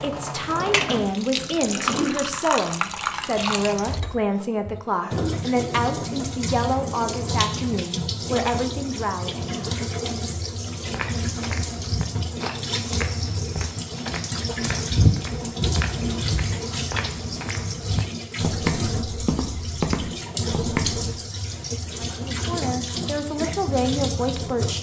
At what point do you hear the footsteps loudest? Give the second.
15 s.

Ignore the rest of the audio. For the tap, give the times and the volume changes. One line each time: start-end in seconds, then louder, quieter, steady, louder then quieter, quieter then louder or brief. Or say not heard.
0.0-24.7 steady.